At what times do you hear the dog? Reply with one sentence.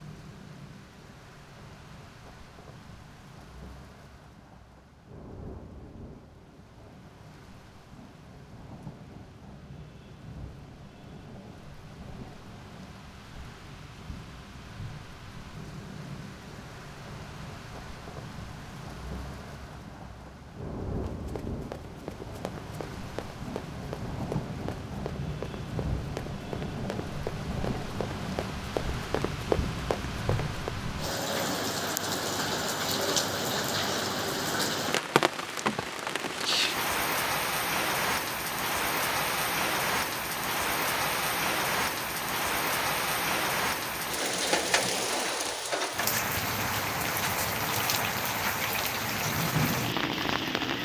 The dog can't be heard in this clip.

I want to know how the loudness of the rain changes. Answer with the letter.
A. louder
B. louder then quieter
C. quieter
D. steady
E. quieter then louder
A.